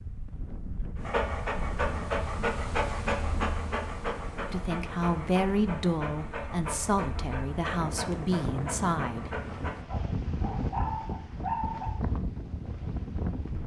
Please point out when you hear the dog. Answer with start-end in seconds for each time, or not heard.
0.9-11.9.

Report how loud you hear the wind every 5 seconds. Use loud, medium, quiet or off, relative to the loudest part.
medium, loud, loud.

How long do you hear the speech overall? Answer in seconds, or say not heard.
5 s.